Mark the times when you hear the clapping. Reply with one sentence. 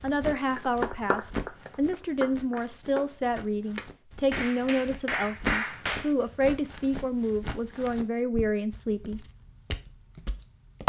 The clapping can be heard from 0.6 to 6.1 s.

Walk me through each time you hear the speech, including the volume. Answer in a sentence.
You can hear the speech from 0.0 to 9.2 s, at a steady volume.